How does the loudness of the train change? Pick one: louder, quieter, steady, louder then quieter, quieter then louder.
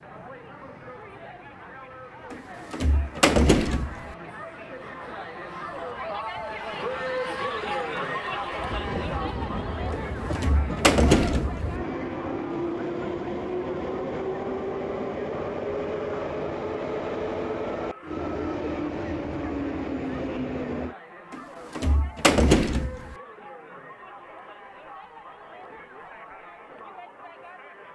louder.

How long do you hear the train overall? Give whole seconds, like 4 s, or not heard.
21 s.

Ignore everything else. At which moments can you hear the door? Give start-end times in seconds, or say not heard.
2.3-4.2, 9.9-11.8, 21.3-23.1.